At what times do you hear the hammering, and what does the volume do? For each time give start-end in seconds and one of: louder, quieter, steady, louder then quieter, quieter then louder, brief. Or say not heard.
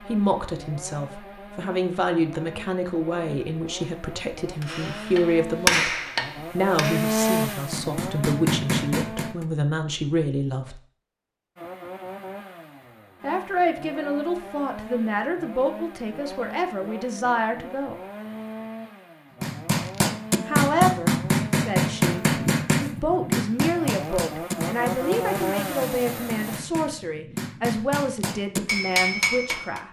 4.6-9.4 quieter then louder
19.4-29.8 quieter then louder.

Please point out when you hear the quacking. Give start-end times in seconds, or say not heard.
not heard.